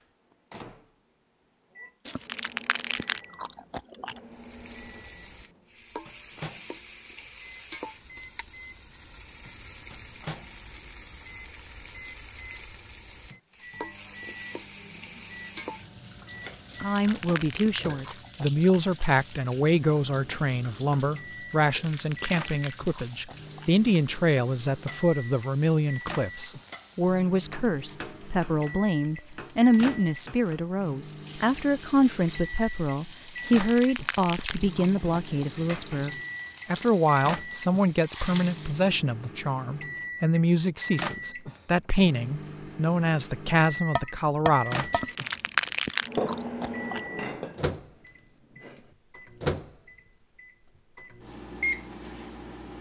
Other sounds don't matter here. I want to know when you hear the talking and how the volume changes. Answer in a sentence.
You can hear the talking from 16.8 to 44.9 s, at a steady volume.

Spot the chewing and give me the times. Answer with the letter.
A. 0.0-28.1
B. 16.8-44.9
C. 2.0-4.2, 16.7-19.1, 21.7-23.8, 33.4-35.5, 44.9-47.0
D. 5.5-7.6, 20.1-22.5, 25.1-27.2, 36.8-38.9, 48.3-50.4
C.